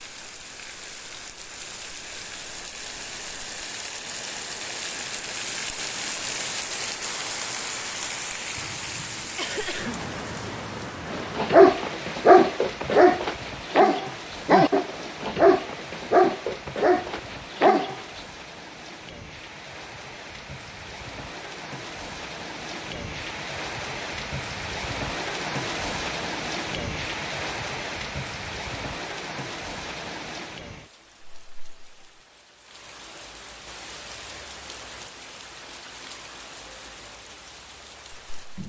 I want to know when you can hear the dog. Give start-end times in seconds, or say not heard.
11.1-18.0.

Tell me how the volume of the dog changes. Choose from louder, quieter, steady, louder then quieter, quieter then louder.
quieter.